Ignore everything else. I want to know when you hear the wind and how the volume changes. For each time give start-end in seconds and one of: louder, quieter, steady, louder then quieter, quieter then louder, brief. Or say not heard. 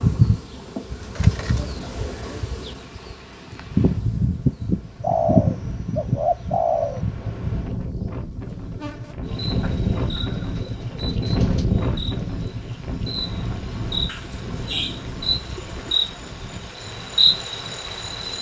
0.0-18.3 louder then quieter.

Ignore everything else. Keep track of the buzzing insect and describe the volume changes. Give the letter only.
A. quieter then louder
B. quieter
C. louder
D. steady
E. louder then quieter
A.